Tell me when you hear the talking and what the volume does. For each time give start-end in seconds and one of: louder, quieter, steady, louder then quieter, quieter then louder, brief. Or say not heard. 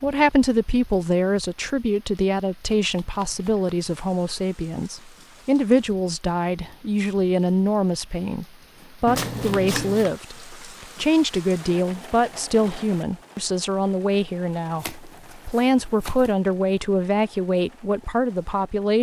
0.0-18.9 steady.